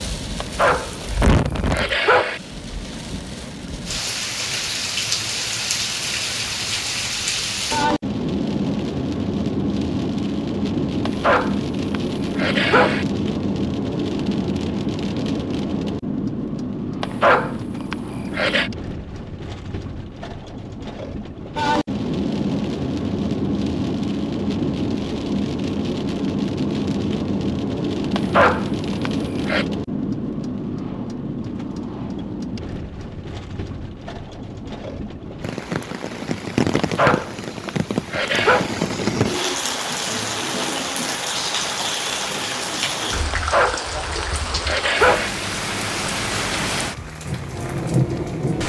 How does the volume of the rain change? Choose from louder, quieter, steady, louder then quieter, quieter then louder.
steady.